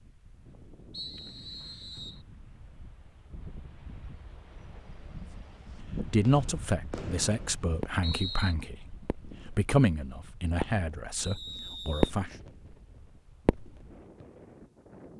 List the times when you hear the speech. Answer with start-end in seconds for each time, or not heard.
6.1-12.3.